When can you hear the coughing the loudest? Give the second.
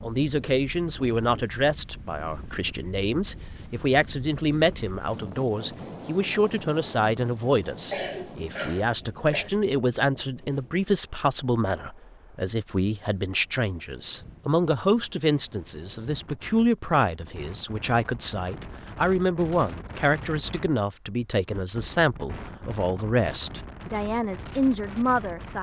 8 s.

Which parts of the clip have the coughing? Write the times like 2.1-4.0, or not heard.
7.9-9.5.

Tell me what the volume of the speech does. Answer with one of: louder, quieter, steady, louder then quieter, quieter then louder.
steady.